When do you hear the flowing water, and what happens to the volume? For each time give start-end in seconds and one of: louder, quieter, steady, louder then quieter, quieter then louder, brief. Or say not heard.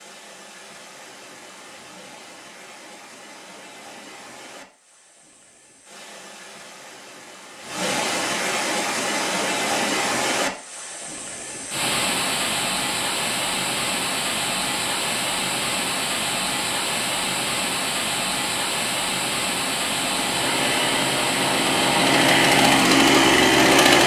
0.0-23.9 louder.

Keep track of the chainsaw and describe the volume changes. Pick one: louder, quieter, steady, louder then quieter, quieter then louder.
louder.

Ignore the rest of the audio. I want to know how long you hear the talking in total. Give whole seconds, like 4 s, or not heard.
not heard.